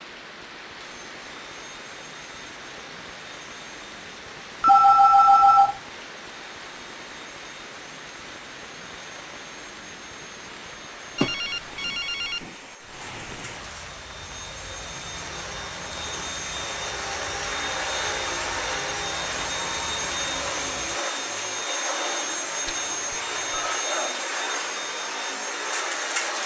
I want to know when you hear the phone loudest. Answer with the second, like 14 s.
5 s.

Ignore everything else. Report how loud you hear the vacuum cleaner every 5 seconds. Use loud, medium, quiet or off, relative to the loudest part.
quiet, quiet, quiet, loud, loud, loud.